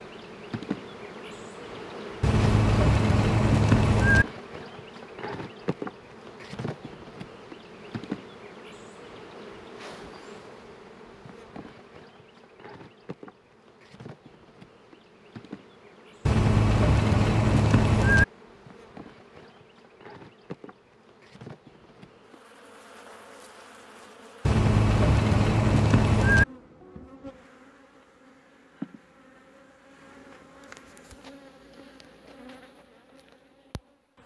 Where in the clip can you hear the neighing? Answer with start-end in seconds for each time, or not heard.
2.2-4.2, 16.2-18.2, 24.4-26.4.